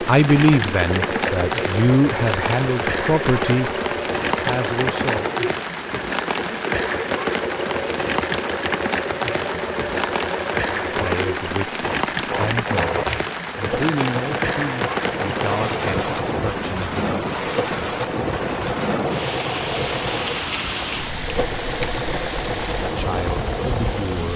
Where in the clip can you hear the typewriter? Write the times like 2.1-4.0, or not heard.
not heard.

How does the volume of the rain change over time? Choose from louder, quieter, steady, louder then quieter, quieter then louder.
steady.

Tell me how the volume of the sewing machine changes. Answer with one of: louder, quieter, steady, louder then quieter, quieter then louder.
steady.